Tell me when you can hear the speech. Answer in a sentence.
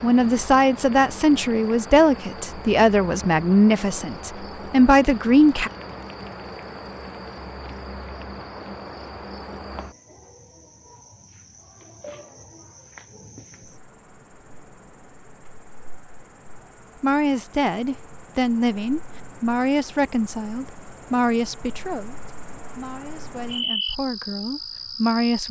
The speech can be heard from 0.0 to 5.7 s and from 17.0 to 25.4 s.